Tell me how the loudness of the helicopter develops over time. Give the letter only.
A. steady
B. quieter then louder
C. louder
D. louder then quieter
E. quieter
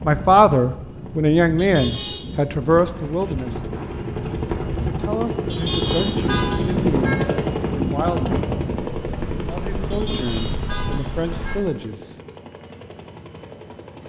D.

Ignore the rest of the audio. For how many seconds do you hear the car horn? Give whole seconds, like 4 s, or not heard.
4 s.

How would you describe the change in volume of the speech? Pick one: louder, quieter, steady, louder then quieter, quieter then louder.
quieter.